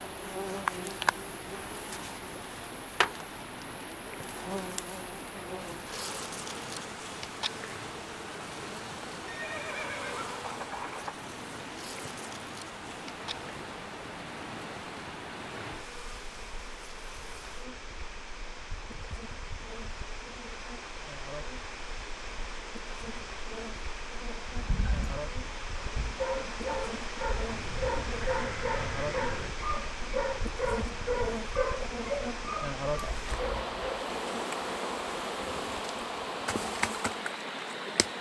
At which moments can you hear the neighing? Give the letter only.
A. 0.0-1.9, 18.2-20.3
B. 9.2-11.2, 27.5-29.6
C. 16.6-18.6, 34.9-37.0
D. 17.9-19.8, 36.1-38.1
B.